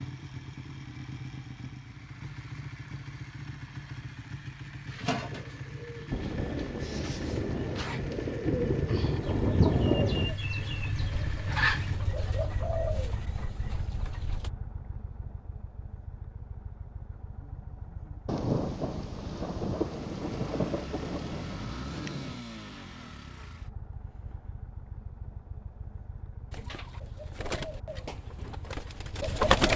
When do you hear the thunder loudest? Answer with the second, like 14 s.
10 s.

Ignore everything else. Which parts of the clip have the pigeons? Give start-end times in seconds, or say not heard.
4.8-14.5, 26.5-29.7.